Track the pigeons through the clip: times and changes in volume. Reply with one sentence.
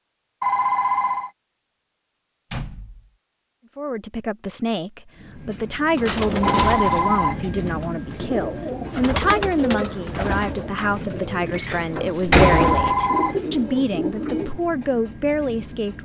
The pigeons can be heard from 6.0 to 14.6 s, at a steady volume.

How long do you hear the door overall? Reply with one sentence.
You can hear the door for 3 seconds altogether.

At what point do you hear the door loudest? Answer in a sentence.
The volume of the door peaks at 12 seconds.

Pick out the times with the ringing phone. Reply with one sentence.
You can hear the ringing phone from 0.4 to 1.3 s, from 6.4 to 7.5 s and from 12.4 to 13.4 s.